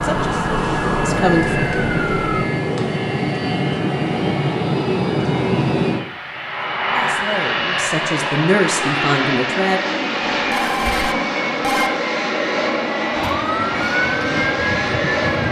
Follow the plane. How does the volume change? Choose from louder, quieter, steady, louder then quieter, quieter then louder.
steady.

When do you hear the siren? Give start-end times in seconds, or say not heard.
0.0-2.5, 13.1-15.4.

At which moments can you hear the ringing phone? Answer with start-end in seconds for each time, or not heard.
10.3-11.9.